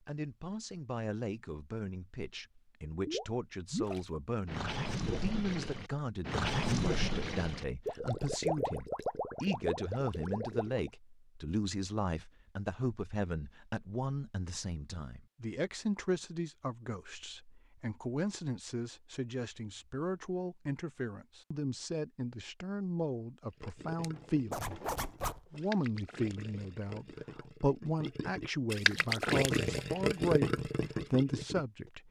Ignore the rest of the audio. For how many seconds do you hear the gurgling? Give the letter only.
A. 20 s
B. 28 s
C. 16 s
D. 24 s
C.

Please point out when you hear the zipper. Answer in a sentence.
The zipper can be heard from 24.5 to 25.4 s.